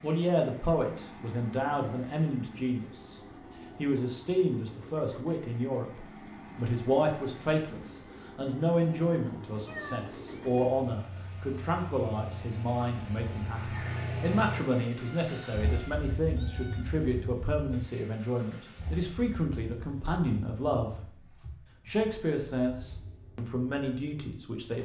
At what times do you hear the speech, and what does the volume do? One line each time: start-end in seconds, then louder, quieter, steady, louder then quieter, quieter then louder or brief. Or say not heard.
0.0-21.1 steady
21.9-24.8 brief.